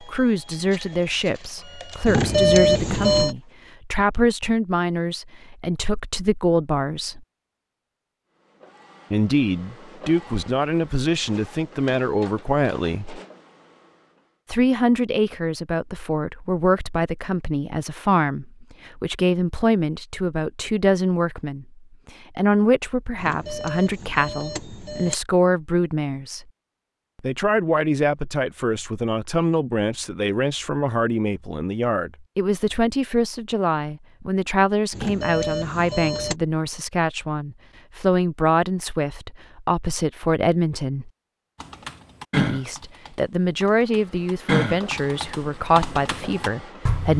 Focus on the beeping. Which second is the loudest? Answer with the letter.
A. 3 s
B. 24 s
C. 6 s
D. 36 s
A.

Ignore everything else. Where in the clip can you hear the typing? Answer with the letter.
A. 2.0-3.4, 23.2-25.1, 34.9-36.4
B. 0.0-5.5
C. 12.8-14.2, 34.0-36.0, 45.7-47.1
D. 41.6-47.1
D.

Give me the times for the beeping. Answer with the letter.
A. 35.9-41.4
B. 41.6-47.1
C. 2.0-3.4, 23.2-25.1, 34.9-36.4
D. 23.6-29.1
C.